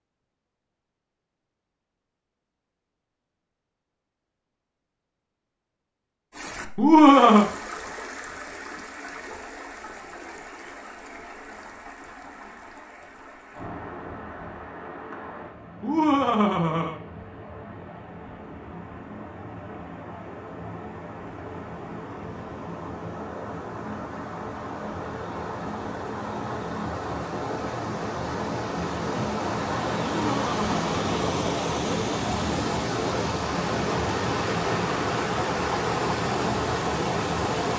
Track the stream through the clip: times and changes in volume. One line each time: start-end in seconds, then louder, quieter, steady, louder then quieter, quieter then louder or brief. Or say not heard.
6.3-37.7 louder.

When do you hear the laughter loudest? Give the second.
7 s.